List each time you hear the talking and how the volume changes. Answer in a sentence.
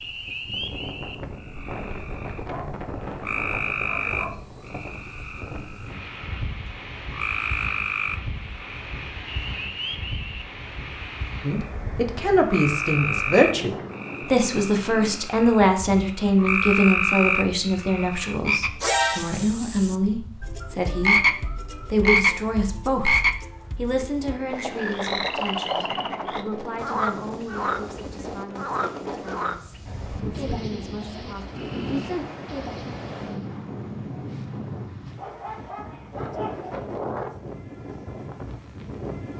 The talking can be heard from 11.4 to 31.4 s, getting quieter.